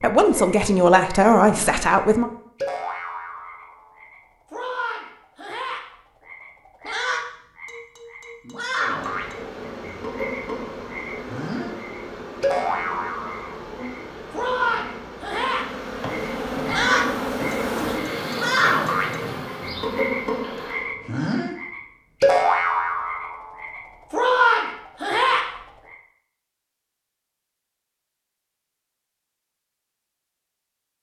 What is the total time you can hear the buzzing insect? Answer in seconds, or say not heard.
12 s.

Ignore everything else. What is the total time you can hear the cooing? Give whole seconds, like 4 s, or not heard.
2 s.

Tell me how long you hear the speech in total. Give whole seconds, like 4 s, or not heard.
2 s.